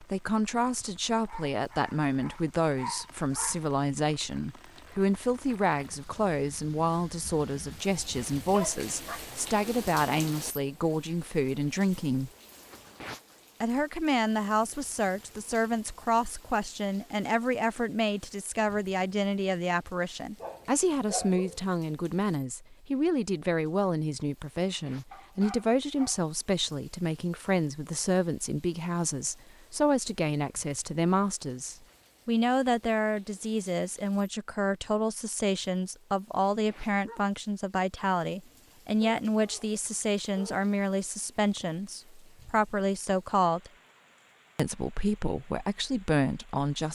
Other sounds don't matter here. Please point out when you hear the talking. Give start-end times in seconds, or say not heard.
0.0-12.3, 13.6-43.7, 44.5-46.9.